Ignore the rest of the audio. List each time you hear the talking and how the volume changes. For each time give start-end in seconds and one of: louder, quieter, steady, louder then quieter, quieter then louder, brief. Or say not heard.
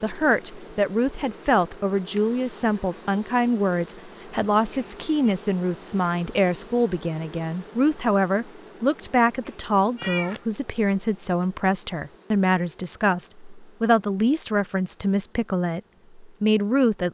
0.0-17.0 steady.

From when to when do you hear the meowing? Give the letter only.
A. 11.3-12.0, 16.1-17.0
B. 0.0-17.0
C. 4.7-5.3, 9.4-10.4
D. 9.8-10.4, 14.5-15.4
C.